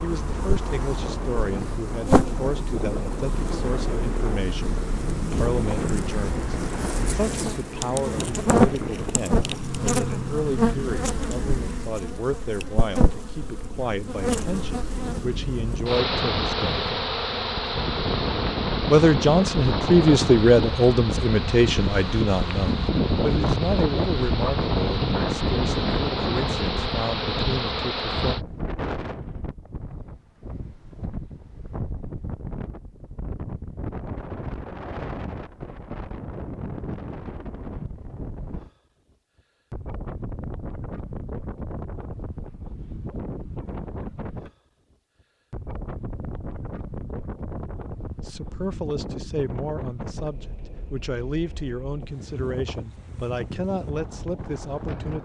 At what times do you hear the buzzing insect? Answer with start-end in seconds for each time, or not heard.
0.0-28.4.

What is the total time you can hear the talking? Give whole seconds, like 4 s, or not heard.
33 s.